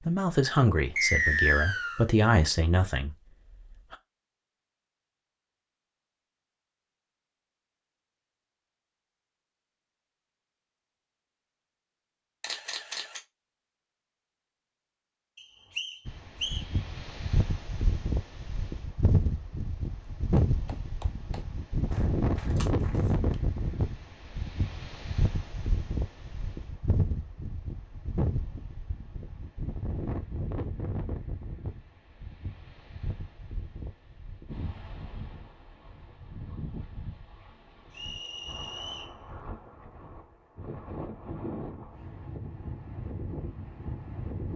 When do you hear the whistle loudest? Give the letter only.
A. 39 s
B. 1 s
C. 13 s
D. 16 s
B.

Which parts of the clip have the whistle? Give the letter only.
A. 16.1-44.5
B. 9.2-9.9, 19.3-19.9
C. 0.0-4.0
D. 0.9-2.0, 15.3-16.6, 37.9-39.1
D.